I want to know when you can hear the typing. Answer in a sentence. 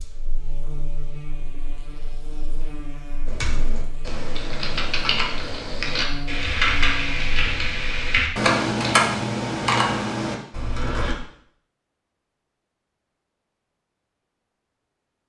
The typing can be heard from 3.2 to 11.2 s.